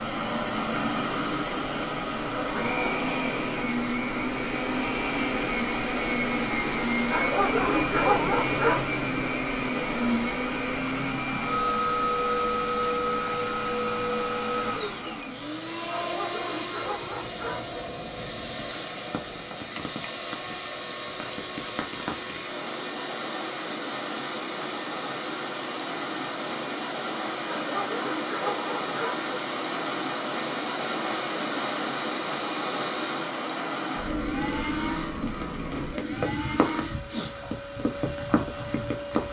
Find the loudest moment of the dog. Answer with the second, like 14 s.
8 s.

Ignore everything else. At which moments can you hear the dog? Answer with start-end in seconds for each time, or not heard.
7.1-8.8, 15.9-17.8, 27.4-29.3.